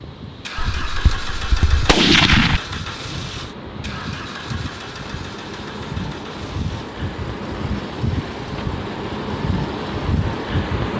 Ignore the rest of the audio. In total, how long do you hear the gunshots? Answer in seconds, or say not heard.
2 s.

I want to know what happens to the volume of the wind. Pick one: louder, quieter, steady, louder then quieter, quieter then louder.
louder.